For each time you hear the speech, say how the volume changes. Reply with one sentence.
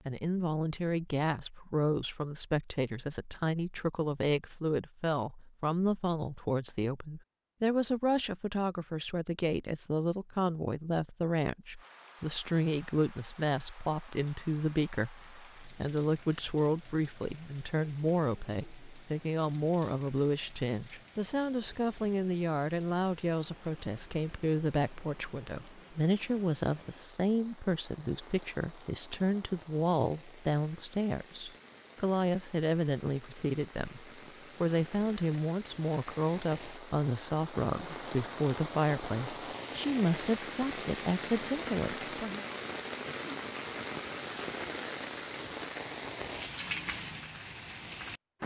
You can hear the speech from 0.1 to 42.5 s, at a steady volume.